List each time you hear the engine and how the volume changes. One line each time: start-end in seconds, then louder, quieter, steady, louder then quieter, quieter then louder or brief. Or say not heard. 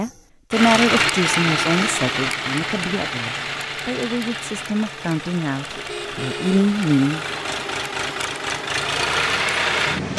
0.0-10.1 quieter then louder.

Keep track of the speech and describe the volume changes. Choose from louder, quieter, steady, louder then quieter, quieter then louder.
quieter then louder.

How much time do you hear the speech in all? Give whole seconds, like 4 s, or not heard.
7 s.